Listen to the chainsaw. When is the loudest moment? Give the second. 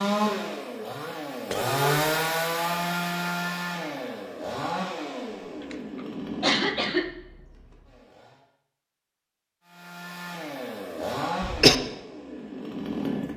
2 s.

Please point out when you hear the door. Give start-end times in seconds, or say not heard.
not heard.